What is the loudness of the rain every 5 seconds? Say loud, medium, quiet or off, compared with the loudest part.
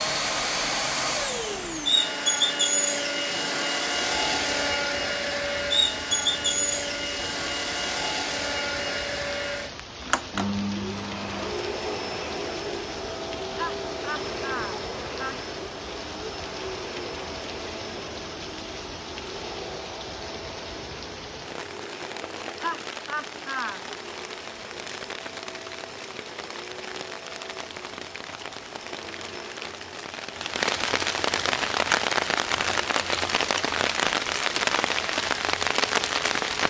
quiet, quiet, quiet, quiet, quiet, quiet, loud, loud.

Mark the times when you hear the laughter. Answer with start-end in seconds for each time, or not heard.
13.6-15.4, 22.6-23.8.